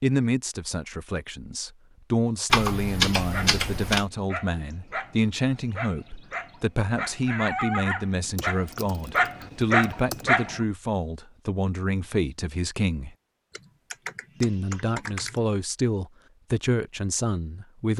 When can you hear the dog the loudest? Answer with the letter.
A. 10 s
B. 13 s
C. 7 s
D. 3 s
A.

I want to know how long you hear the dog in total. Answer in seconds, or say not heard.
7 s.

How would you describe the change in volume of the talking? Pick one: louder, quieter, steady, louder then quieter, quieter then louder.
steady.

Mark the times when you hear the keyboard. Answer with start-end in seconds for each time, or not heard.
2.5-4.0, 8.3-10.2, 13.5-15.4.